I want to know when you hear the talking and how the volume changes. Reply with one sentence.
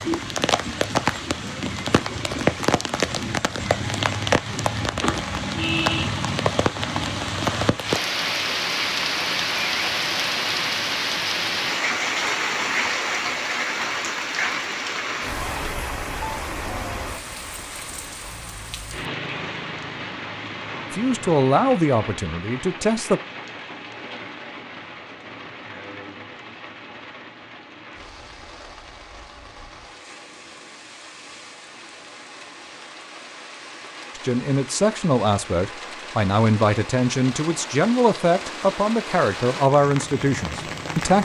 The talking can be heard briefly from 20.9 to 23.2 s; and from 34.1 to 41.2 s, at a steady volume.